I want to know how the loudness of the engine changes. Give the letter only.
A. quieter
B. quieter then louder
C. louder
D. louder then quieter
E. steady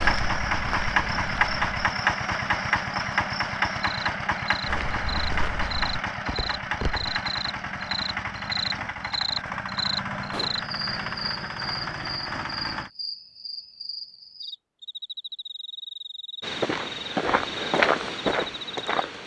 A.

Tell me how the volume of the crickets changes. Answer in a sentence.
The loudness of the crickets goes up, then down.